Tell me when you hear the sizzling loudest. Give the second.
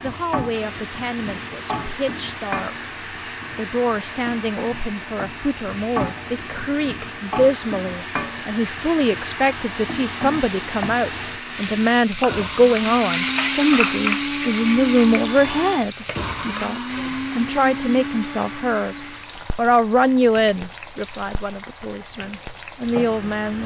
14 s.